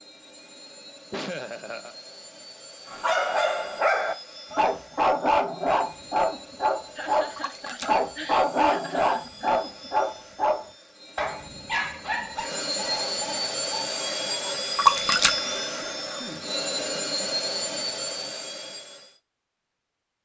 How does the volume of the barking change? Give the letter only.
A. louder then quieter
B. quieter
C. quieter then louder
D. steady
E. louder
B.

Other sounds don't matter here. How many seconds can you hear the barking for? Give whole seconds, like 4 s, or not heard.
12 s.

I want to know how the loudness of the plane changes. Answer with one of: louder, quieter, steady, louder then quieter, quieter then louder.
louder.